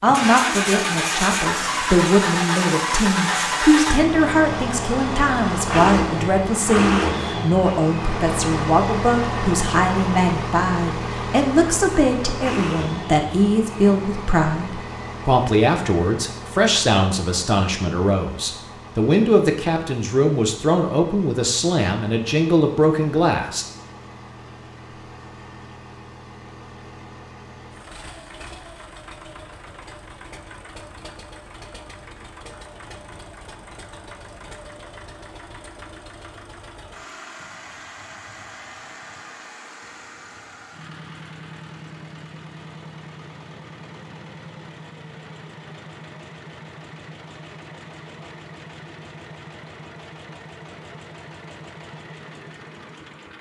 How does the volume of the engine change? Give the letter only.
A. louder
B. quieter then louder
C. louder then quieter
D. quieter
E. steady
D.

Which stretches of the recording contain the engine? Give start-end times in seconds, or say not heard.
0.0-53.3.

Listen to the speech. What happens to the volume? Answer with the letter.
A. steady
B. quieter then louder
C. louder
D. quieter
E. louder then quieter
A.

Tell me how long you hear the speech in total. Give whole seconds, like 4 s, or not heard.
24 s.